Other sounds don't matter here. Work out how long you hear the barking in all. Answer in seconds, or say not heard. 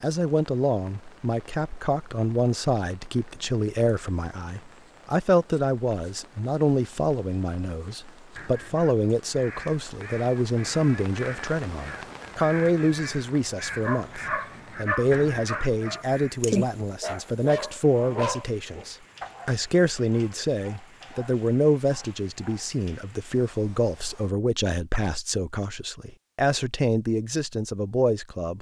9 s.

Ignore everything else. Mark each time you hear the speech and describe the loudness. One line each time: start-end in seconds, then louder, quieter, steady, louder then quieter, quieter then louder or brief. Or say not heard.
0.0-28.5 steady.